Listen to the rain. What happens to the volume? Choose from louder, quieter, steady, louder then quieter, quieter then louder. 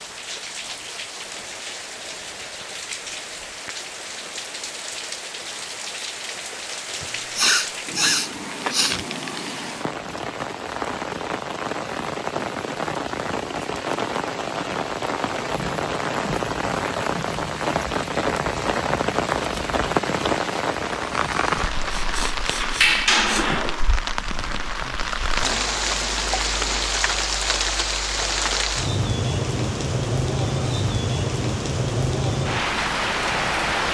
louder.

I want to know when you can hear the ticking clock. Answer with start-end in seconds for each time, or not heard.
not heard.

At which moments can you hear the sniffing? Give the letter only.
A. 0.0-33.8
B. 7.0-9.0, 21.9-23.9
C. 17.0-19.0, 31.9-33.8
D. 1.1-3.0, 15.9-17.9
B.